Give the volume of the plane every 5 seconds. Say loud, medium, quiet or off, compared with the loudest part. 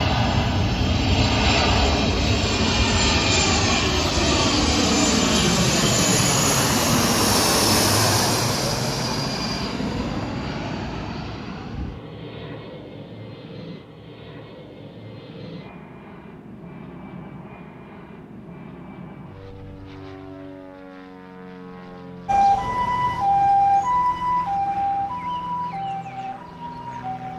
loud, loud, quiet, quiet, quiet, quiet.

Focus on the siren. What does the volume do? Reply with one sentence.
The volume of the siren goes down.